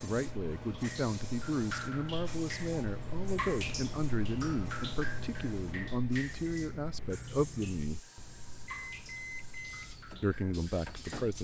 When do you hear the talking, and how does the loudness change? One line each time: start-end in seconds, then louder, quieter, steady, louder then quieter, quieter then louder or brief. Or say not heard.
0.0-8.1 steady
10.2-11.4 brief.